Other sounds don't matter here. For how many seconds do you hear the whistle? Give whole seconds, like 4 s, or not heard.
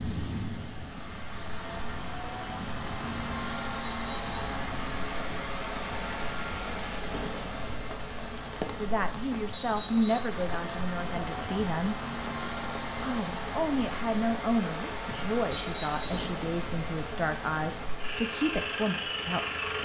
2 s.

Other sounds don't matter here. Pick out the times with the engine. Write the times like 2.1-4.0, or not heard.
0.0-19.8.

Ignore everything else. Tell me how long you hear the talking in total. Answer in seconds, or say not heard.
10 s.